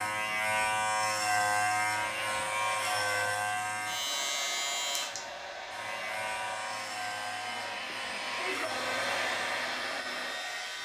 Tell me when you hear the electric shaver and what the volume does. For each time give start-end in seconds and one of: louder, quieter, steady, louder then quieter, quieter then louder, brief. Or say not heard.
0.0-10.8 quieter.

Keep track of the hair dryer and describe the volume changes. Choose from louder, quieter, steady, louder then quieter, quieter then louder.
louder.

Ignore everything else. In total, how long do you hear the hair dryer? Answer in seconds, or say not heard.
9 s.